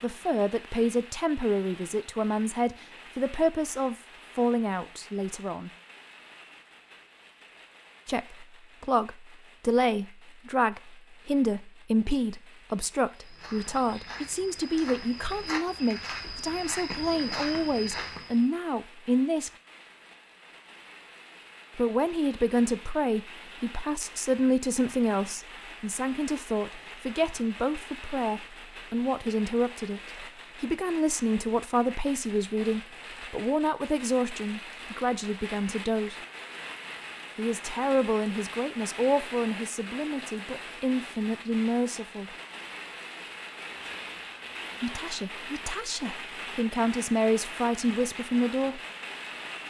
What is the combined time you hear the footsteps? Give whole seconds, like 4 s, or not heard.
5 s.